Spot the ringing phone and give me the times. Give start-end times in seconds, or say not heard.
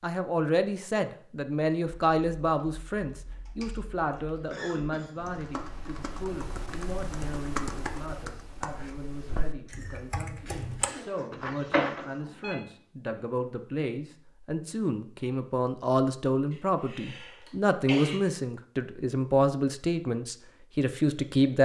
11.3-12.6.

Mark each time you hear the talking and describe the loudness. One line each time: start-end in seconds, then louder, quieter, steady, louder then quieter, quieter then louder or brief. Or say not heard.
0.0-21.6 quieter then louder.